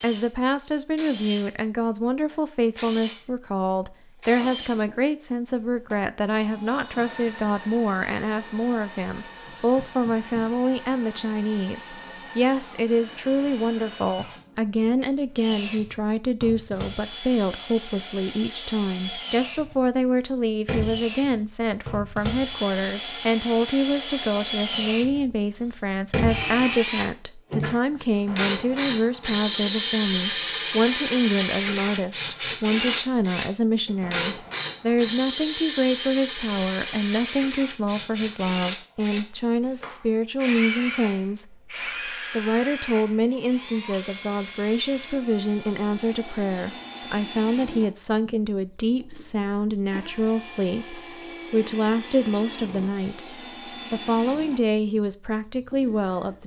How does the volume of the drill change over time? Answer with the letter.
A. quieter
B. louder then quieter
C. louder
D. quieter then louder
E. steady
B.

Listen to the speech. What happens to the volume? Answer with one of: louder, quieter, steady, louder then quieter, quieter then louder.
steady.